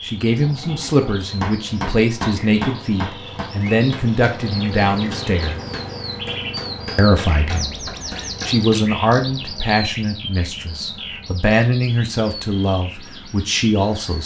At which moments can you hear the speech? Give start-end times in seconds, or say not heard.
0.1-5.6, 7.0-14.2.